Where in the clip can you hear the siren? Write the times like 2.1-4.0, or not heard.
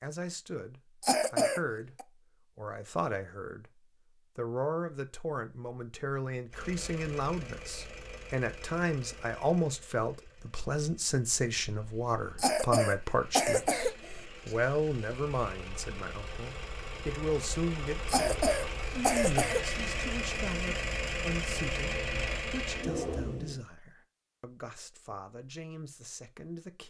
not heard.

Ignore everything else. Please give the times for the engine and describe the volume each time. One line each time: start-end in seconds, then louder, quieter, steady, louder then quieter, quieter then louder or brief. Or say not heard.
6.5-23.6 quieter then louder.